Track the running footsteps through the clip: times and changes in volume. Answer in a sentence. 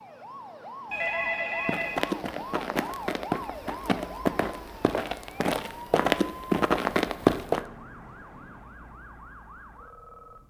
You can hear the running footsteps from 1.6 to 7.7 s, getting louder.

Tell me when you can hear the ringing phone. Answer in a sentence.
The ringing phone can be heard from 0.9 to 2.0 s.